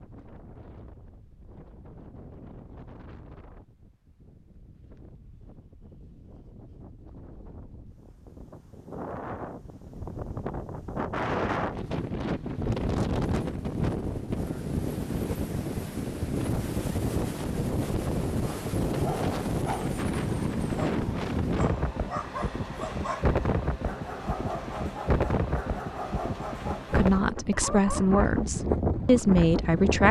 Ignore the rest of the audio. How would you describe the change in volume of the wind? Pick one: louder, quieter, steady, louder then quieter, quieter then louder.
louder.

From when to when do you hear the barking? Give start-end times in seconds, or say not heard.
18.9-28.3.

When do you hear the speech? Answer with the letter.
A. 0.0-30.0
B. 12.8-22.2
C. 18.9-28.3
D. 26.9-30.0
D.